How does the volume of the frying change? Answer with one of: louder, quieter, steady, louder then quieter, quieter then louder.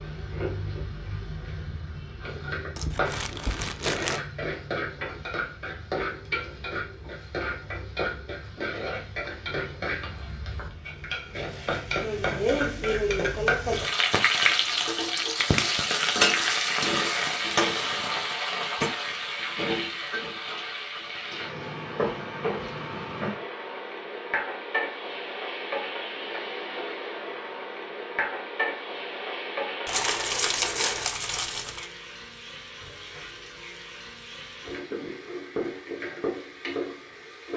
louder then quieter.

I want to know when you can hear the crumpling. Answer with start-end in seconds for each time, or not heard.
2.8-4.2, 15.2-16.2, 29.9-31.9.